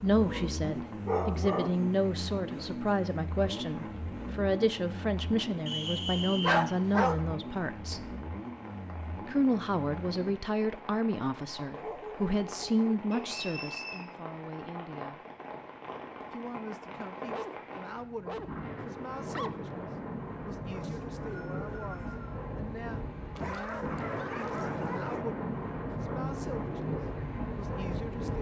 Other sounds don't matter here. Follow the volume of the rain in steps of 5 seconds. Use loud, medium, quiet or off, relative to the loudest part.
quiet, quiet, medium, medium, loud, loud.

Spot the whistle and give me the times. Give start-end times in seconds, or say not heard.
5.7-6.6, 13.1-14.1, 20.8-22.4.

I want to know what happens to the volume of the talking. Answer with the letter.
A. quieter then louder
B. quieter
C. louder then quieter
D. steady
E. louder
B.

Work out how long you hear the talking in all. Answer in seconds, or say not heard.
26 s.